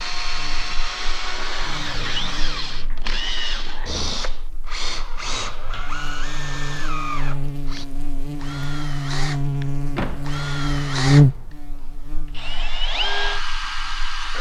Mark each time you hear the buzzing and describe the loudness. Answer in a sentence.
The buzzing can be heard from 0.1 to 14.3 s, getting quieter then louder.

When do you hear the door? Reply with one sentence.
You can hear the door from 1.6 to 3.0 s, from 5.2 to 6.0 s and from 9.9 to 10.4 s.